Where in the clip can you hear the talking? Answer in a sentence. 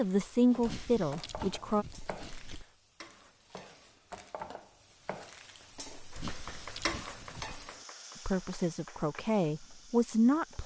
You can hear the talking from 0.0 to 1.9 s and from 8.2 to 10.6 s.